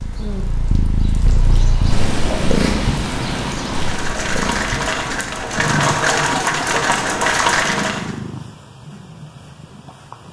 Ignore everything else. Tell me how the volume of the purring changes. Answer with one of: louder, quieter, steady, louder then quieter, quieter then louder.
quieter.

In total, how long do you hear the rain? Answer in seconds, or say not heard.
8 s.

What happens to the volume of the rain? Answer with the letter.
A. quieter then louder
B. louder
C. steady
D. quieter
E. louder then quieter
B.